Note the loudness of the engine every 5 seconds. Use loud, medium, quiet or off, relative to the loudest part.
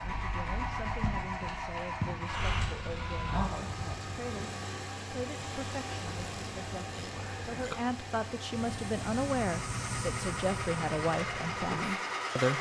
loud, medium, loud.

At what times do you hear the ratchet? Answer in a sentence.
The ratchet can be heard from 5.9 to 7.8 s.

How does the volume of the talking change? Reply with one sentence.
The volume of the talking goes up.